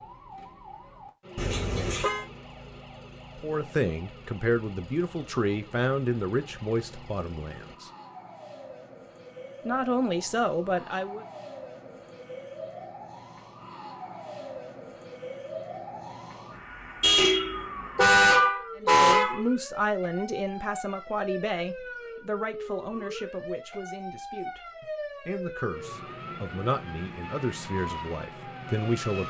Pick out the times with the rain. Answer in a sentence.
You can't hear the rain here.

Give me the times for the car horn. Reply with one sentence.
You can hear the car horn from 1.4 to 2.2 s and from 17.0 to 19.4 s.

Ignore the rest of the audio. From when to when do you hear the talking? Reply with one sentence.
You can hear the talking from 3.4 to 7.9 s, from 9.7 to 11.2 s and from 18.8 to 29.2 s.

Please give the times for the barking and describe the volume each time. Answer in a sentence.
The barking can't be heard in this clip.